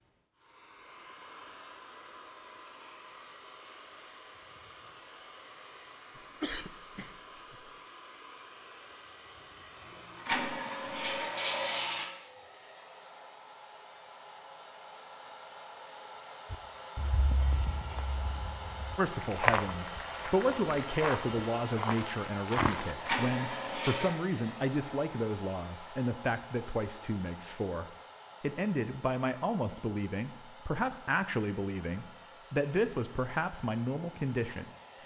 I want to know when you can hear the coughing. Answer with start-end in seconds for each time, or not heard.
6.2-7.7.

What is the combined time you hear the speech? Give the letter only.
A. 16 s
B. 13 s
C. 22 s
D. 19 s
A.